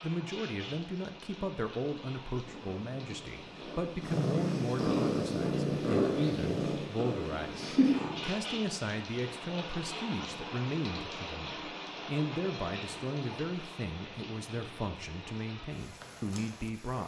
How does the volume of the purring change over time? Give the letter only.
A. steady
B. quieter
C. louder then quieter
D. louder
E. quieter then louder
D.